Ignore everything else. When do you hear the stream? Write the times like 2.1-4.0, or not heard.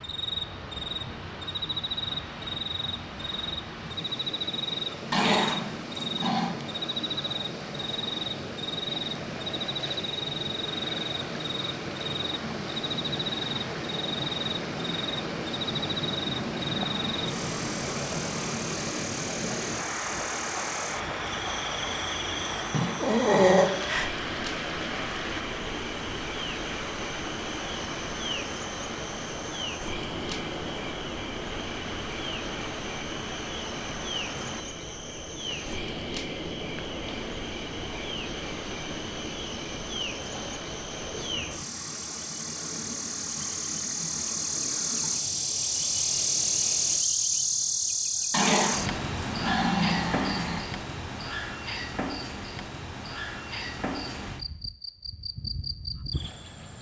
0.0-47.0.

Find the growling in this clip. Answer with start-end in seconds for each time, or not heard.
5.1-6.5, 22.7-23.7, 48.3-50.6.